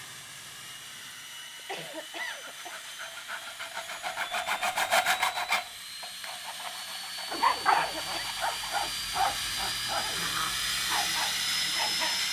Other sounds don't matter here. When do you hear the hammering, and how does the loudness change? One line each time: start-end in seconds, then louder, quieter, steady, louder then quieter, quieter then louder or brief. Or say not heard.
not heard.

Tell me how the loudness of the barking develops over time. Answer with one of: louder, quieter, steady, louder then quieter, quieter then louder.
quieter.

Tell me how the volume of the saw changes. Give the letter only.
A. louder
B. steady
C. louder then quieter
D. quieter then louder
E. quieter
C.